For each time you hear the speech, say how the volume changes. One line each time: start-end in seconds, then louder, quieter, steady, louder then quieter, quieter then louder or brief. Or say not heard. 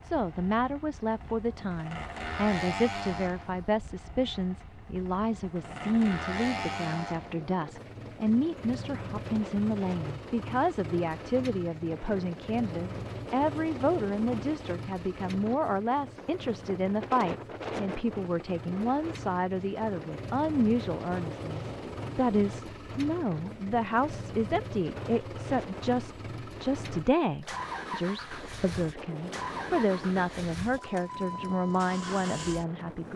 0.0-33.1 steady.